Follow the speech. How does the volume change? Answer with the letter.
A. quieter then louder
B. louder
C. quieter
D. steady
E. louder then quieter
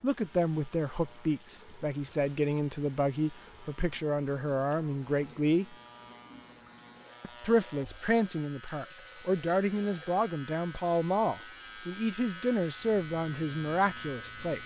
D.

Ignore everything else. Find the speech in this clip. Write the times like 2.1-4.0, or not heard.
0.0-5.8, 7.2-14.6.